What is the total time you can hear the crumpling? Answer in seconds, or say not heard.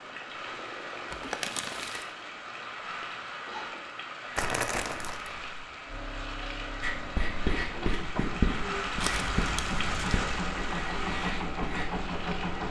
3 s.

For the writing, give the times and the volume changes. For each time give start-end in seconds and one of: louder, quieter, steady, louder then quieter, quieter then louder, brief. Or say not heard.
6.8-12.0 quieter.